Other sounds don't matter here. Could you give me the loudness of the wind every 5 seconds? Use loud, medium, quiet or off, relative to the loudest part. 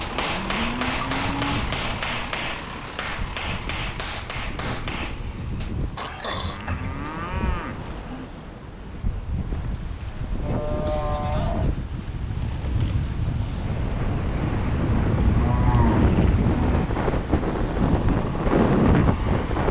quiet, quiet, medium, loud.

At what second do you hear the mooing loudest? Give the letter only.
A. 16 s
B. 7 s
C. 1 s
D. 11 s
A.